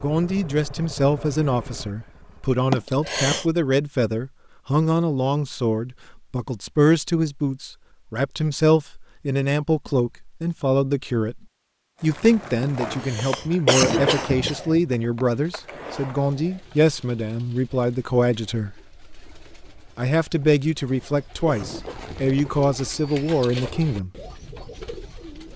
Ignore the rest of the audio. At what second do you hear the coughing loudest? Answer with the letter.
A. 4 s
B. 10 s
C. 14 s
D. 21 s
C.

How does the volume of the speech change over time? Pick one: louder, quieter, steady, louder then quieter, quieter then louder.
steady.